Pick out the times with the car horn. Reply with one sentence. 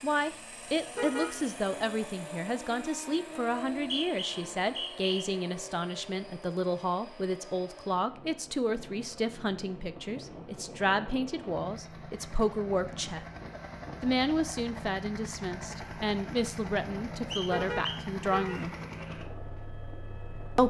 The car horn can be heard from 0.9 to 1.4 s and from 17.5 to 18.6 s.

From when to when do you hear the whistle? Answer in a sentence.
You can hear the whistle from 3.5 to 5.2 s and from 17.3 to 18.7 s.